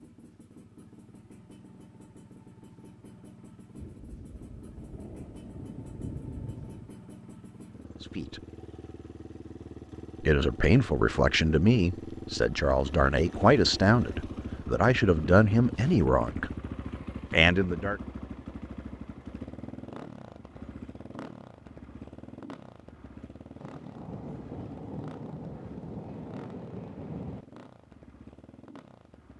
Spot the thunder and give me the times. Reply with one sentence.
You can hear the thunder from 3.8 to 6.9 s and from 23.6 to 27.4 s.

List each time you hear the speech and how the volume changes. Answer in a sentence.
You can hear the speech briefly from 8.0 to 8.4 s; from 10.2 to 16.5 s, at a steady volume; and briefly from 17.3 to 18.0 s.